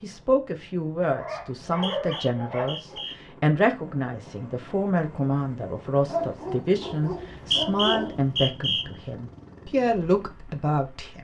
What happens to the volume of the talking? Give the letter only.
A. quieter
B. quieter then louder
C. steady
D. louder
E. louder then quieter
C.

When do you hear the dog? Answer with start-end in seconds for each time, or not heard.
1.0-3.0, 6.0-8.3.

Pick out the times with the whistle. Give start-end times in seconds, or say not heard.
1.6-3.1, 7.2-8.8.